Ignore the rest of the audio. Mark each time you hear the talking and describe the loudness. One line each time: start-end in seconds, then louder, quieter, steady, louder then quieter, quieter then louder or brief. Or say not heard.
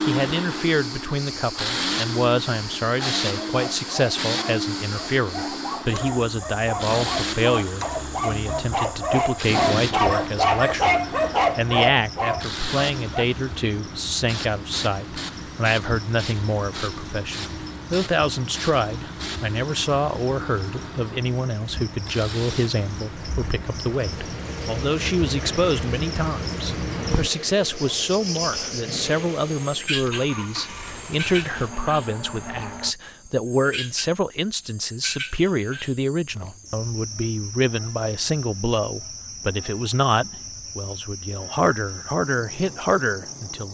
0.0-43.6 steady.